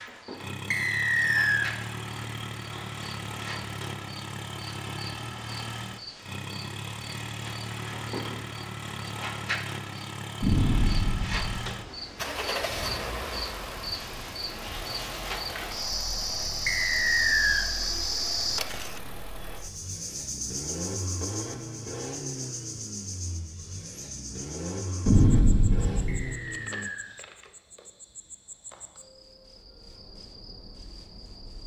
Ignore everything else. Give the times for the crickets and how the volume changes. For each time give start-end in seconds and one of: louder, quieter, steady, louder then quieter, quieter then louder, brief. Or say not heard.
0.0-31.6 louder then quieter.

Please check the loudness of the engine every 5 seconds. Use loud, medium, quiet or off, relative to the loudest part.
loud, loud, loud, medium, loud, loud, off.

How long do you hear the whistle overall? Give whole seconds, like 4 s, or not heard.
3 s.